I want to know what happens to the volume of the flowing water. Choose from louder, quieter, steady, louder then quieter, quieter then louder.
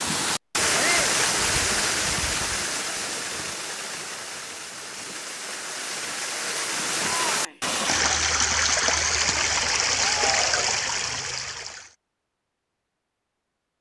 quieter then louder.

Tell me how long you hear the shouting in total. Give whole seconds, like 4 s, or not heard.
2 s.